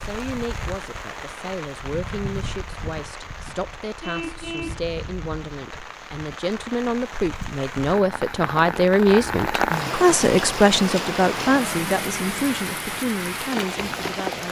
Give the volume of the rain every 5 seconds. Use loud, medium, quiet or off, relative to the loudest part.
medium, loud, loud.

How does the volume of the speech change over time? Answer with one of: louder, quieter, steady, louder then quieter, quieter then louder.
louder then quieter.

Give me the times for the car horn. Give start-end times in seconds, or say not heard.
4.0-4.8.